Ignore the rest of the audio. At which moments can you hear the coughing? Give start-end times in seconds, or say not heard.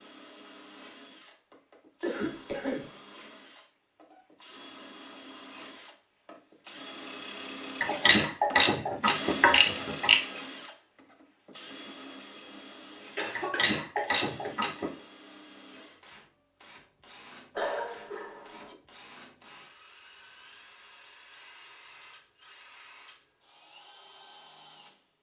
2.0-2.9, 13.2-14.6, 17.6-18.8.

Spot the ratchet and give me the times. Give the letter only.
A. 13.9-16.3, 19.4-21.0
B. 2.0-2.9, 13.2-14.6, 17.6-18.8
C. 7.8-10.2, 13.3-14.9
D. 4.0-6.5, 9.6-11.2
C.